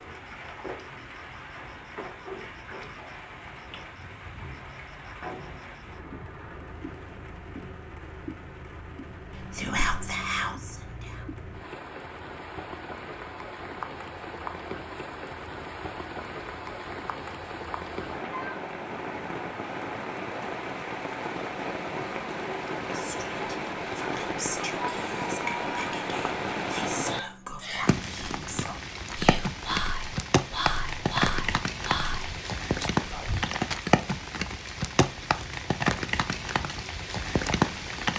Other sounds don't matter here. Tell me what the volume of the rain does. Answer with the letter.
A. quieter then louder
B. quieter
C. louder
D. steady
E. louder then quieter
C.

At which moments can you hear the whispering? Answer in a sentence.
You can hear the whispering from 9.3 to 11.3 s and from 22.9 to 33.5 s.